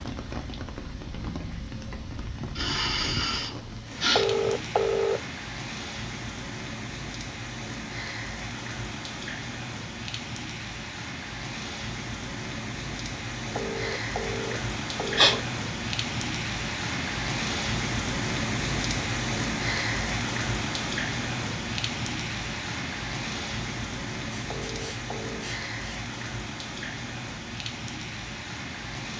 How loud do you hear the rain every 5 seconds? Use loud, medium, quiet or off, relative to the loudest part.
medium, medium, medium, loud, loud, medium.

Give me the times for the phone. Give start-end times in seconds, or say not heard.
4.2-5.2, 13.6-15.4, 24.5-25.5.